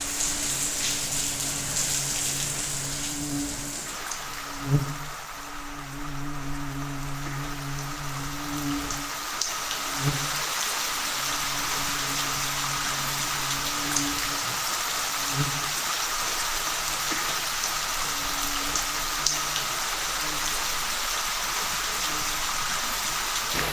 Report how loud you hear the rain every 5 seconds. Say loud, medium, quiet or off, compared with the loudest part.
loud, medium, loud, loud, loud.